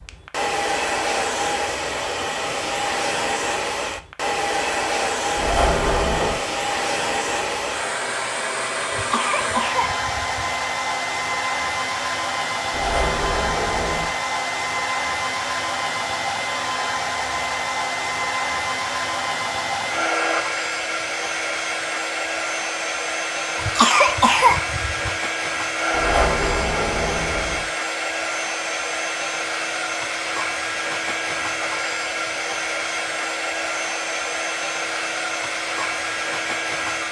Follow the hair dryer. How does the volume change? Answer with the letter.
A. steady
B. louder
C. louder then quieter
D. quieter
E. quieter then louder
A.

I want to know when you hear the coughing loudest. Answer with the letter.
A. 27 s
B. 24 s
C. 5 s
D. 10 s
B.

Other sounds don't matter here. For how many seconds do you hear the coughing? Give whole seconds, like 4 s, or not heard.
3 s.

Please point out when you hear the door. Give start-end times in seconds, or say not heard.
5.3-6.4, 12.7-14.1, 25.9-27.6.